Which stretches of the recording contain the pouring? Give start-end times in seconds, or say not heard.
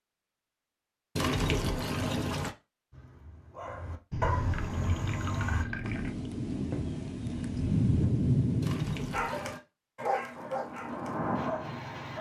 1.1-2.5, 4.1-6.2, 8.6-9.6.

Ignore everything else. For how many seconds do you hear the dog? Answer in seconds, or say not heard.
6 s.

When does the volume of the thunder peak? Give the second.
8 s.